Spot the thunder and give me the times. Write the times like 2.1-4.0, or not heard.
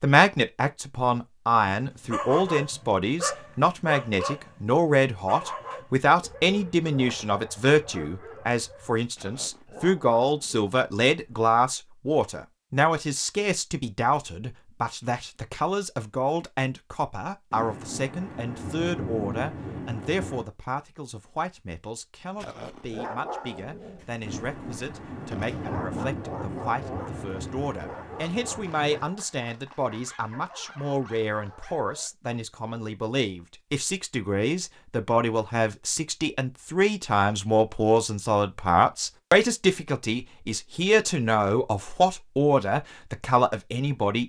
17.5-20.4, 24.2-29.1.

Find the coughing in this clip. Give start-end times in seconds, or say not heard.
not heard.